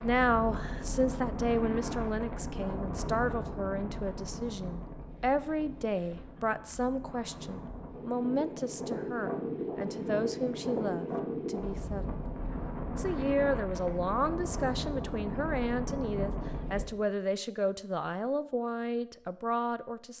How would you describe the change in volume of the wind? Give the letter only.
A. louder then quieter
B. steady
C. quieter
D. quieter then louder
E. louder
D.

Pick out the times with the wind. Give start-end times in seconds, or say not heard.
0.0-16.9.